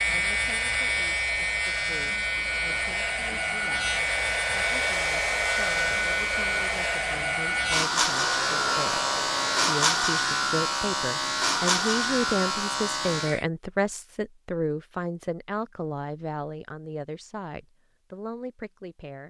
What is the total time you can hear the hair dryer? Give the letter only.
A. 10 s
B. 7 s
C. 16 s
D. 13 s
A.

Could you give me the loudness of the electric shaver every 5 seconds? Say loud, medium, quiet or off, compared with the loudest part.
loud, loud, loud, off.